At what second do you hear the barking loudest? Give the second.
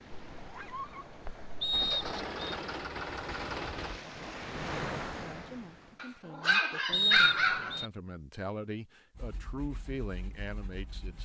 7 s.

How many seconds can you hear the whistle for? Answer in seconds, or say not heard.
2 s.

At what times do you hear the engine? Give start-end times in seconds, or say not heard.
1.7-4.0, 9.1-11.2.